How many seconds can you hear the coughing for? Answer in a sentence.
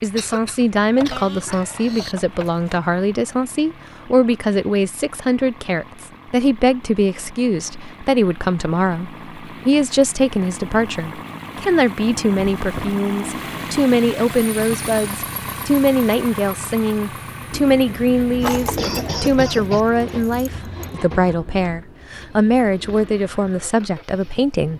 You can hear the coughing for 3 seconds altogether.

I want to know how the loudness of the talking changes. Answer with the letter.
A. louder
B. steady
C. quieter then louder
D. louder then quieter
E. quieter
B.